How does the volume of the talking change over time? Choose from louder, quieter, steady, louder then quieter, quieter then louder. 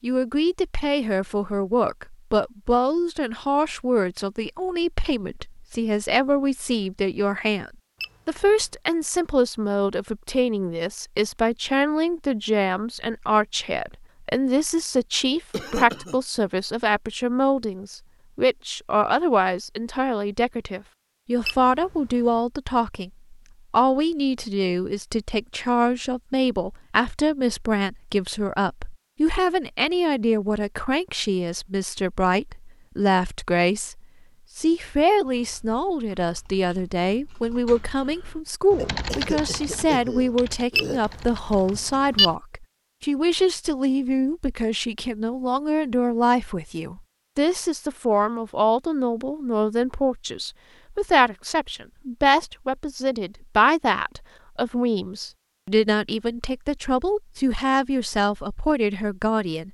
steady.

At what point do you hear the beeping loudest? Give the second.
42 s.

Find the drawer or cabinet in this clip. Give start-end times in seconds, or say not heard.
not heard.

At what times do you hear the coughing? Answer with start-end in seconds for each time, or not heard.
15.5-16.2, 38.8-41.0.